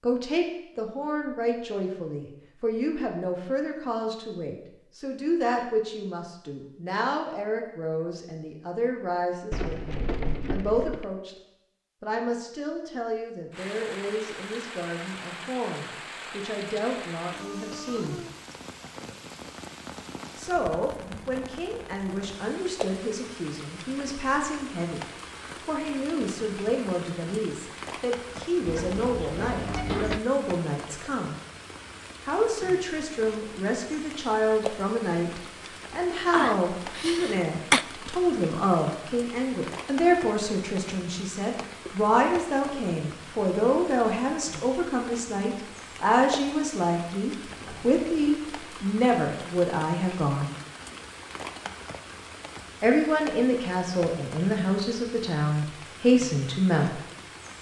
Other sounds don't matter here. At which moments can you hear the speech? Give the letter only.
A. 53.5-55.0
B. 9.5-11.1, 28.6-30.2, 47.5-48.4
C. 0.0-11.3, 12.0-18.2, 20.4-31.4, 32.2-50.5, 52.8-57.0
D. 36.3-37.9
C.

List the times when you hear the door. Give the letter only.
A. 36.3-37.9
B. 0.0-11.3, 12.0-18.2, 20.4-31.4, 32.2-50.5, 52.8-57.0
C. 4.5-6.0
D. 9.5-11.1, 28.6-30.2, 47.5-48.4
D.